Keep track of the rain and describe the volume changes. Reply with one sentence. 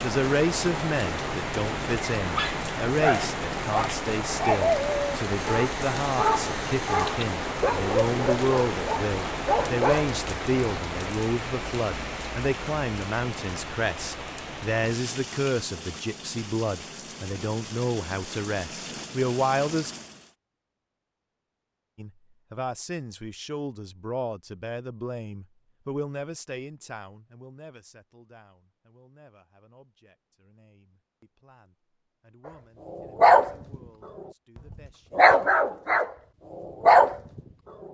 The loudness of the rain goes down.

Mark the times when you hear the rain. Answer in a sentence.
You can hear the rain from 0.0 to 20.4 s.